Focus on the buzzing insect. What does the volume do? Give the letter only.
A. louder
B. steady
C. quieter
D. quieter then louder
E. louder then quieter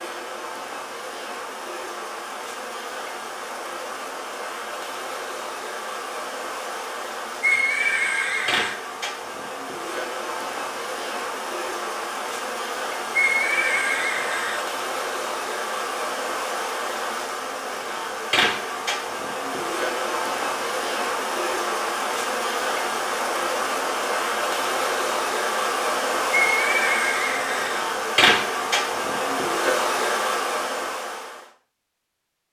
A.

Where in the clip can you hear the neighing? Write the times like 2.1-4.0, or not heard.
7.4-8.8, 13.1-14.7, 26.3-27.8.